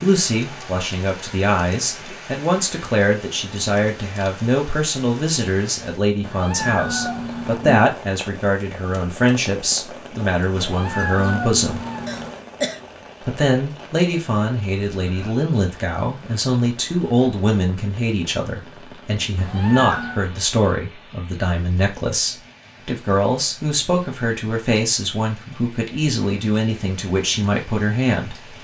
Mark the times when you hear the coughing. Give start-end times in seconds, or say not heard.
12.1-12.8.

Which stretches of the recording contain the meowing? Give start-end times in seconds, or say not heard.
6.2-7.7, 10.6-12.3, 19.4-20.2.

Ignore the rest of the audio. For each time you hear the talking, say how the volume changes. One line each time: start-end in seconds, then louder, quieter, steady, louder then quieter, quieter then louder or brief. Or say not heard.
0.0-11.8 steady
13.2-28.4 steady.